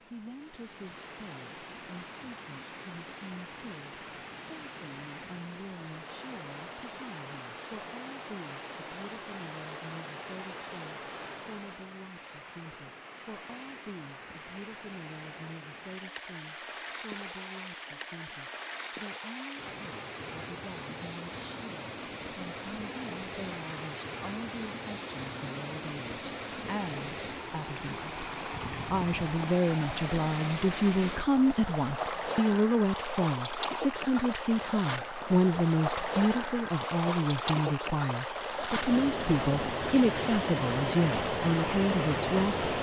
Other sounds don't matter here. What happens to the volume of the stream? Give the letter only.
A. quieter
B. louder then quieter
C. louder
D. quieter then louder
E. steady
C.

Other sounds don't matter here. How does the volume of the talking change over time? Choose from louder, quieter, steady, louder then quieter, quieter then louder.
louder.